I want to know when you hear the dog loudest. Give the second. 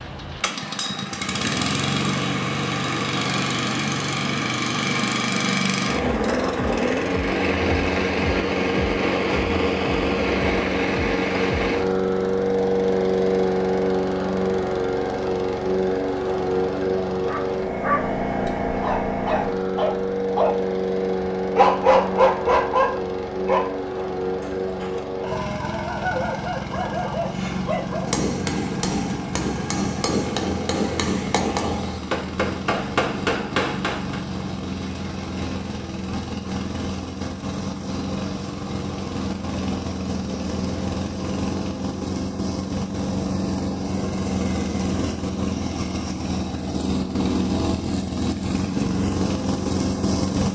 22 s.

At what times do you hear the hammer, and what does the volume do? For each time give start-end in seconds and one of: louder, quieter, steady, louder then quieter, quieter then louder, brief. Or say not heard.
27.4-34.2 steady.